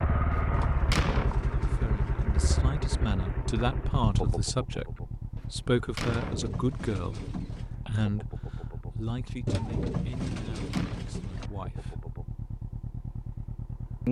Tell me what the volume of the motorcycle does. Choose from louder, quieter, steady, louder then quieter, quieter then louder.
quieter.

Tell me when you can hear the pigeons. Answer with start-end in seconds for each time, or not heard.
0.5-2.5, 6.1-7.8, 9.4-11.5.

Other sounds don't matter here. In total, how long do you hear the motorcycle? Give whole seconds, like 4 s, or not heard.
14 s.